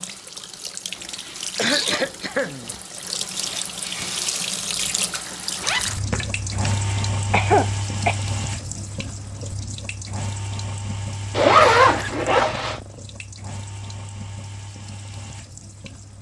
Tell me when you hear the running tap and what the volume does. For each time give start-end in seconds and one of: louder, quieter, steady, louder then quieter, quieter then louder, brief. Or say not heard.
0.0-16.1 quieter.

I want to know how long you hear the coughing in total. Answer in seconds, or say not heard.
3 s.